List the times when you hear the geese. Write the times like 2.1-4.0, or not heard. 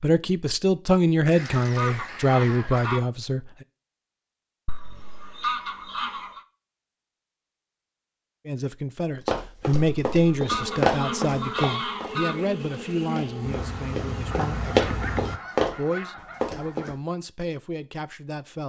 1.3-3.0, 4.7-6.4, 9.7-12.4, 14.3-16.9.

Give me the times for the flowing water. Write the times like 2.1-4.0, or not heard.
not heard.